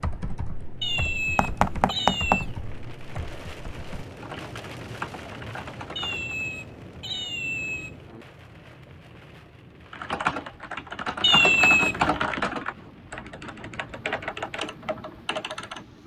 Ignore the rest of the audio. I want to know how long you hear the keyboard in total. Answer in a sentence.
You can hear the keyboard for 12 seconds altogether.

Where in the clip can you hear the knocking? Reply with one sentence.
The knocking can be heard from 1.4 to 2.5 s.